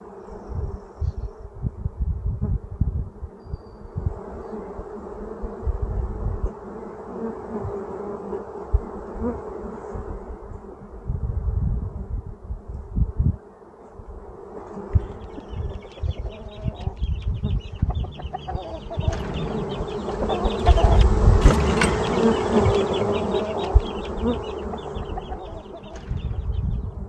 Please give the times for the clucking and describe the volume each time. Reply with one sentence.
The clucking can be heard from 15.1 to 27.0 s, getting louder then quieter.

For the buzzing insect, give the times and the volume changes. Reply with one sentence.
You can hear the buzzing insect from 0.0 to 27.0 s, getting louder.